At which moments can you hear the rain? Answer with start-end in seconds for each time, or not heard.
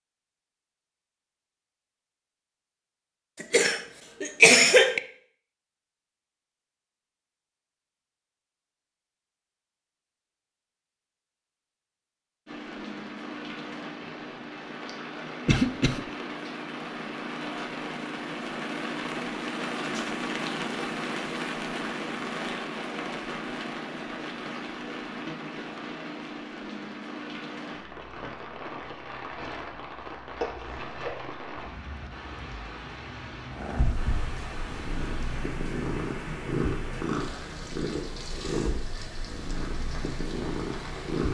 12.4-41.2.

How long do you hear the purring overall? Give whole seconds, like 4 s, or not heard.
8 s.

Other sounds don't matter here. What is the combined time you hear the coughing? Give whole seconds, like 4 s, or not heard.
3 s.